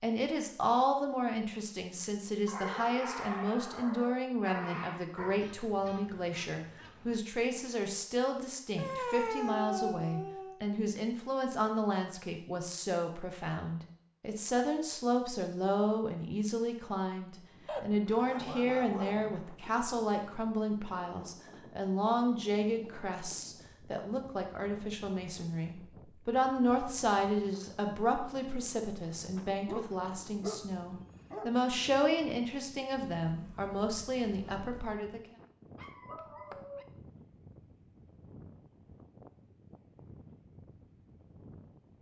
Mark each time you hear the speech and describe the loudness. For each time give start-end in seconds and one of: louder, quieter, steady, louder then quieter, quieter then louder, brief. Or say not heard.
0.0-35.2 steady.